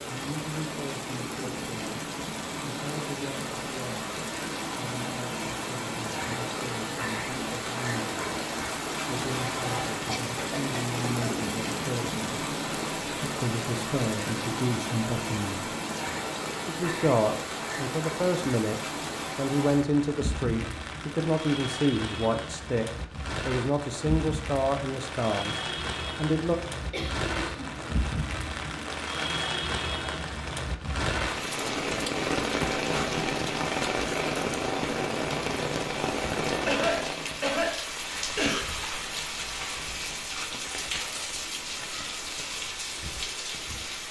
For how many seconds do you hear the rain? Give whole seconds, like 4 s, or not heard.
44 s.